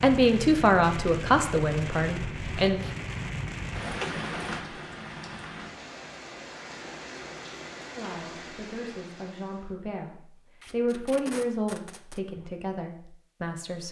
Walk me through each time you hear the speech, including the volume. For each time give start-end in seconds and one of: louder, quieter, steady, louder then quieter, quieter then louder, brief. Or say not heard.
0.0-2.8 brief
8.0-13.8 louder then quieter.